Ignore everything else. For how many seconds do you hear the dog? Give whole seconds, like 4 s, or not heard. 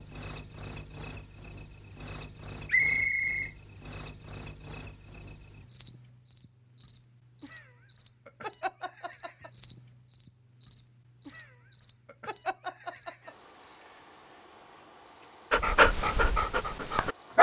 2 s.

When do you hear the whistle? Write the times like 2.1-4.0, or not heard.
2.6-3.5.